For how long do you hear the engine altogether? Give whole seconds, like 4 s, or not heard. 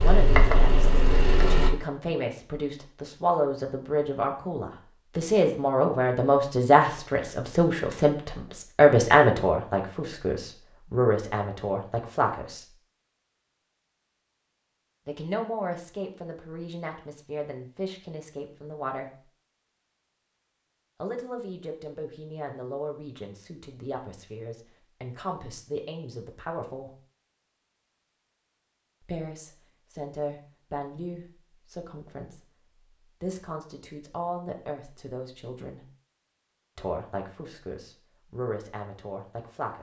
2 s.